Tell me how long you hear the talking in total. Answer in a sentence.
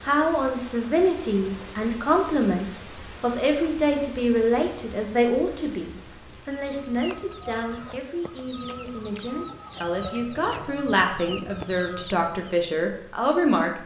You can hear the talking for 14 seconds altogether.